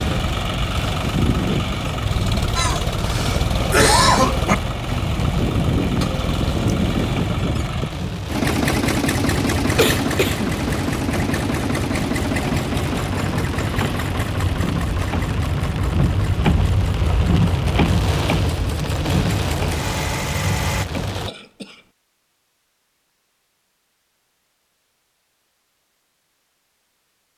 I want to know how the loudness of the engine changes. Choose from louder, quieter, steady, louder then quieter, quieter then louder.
quieter.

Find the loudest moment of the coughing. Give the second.
4 s.